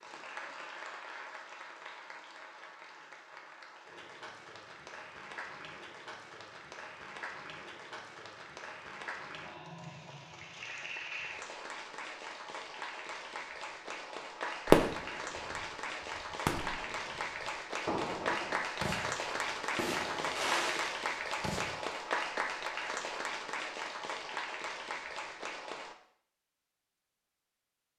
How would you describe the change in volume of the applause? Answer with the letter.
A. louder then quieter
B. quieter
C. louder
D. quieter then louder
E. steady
C.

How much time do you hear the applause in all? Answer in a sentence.
You can hear the applause for 26 seconds altogether.